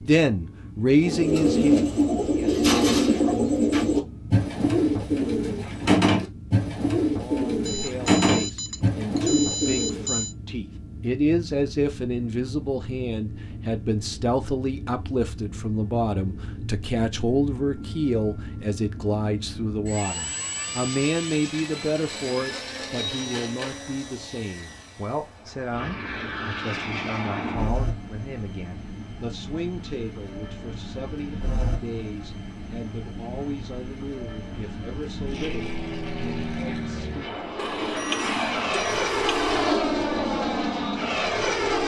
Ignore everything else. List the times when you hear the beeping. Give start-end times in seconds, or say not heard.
7.7-10.3, 37.5-39.8.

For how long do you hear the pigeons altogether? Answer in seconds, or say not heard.
9 s.